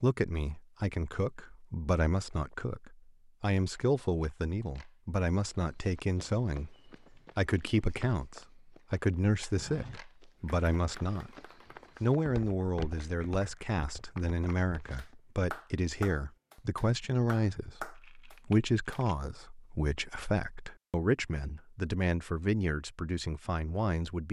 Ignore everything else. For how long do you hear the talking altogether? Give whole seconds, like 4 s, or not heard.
23 s.